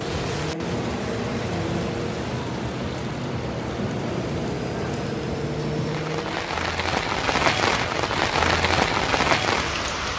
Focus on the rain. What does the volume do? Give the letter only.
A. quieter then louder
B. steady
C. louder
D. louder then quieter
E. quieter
C.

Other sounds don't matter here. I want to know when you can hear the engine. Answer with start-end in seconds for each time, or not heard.
0.0-6.7.